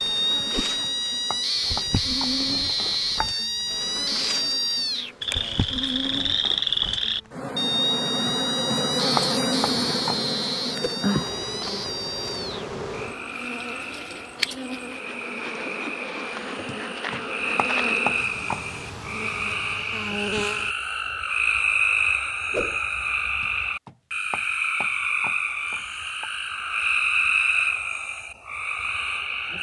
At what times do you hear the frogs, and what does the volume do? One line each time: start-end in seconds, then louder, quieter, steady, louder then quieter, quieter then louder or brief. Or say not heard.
0.0-29.5 quieter then louder.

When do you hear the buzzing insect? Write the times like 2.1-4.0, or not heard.
0.0-20.8.